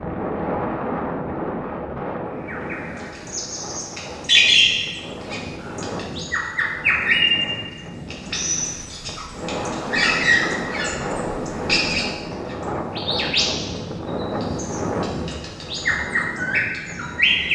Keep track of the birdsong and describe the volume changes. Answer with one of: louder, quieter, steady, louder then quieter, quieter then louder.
quieter.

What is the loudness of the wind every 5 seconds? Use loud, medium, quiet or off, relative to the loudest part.
loud, medium, loud, medium.